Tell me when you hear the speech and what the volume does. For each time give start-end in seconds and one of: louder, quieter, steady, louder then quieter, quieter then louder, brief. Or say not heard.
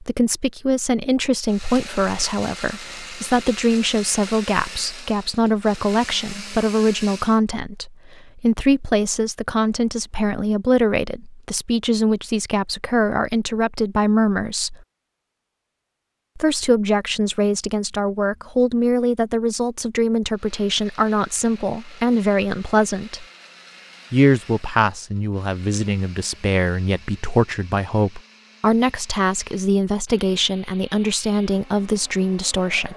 0.0-14.8 steady
16.4-23.2 steady
24.1-32.9 steady.